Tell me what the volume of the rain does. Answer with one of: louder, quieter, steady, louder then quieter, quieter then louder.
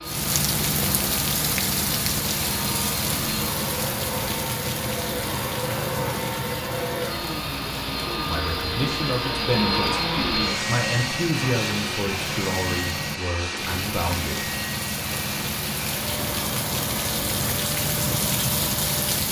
quieter then louder.